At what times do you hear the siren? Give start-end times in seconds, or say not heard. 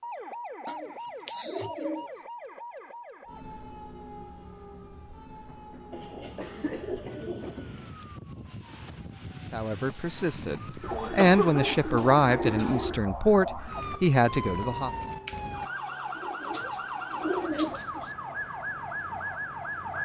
0.0-20.0.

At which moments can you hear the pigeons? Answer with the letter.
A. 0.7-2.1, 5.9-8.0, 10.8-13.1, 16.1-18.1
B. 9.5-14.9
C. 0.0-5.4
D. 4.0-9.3
A.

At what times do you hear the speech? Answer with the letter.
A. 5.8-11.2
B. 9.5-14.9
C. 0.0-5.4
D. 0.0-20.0
B.